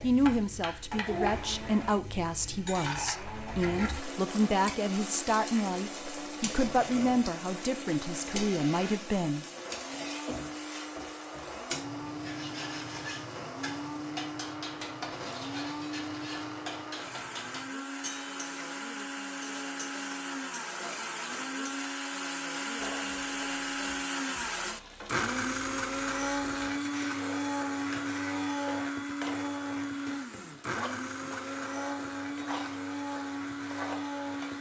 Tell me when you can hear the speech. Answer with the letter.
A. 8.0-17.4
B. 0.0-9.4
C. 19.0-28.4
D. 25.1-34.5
B.